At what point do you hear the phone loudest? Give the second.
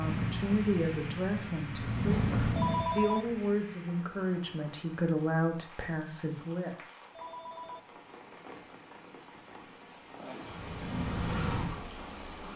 3 s.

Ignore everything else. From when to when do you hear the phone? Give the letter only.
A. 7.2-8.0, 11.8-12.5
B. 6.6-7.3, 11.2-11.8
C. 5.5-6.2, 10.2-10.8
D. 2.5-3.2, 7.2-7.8
D.